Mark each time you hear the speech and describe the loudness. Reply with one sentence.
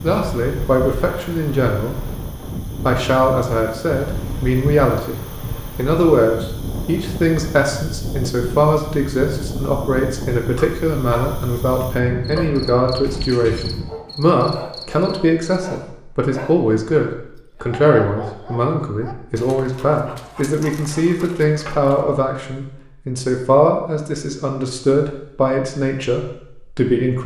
The speech can be heard briefly from 0.0 to 2.0 s; and from 2.9 to 27.2 s, at a steady volume.